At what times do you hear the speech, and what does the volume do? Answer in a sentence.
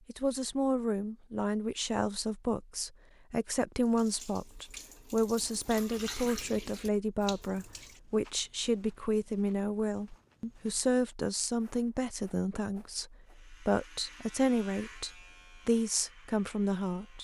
The speech can be heard from 0.1 to 17.1 s, at a steady volume.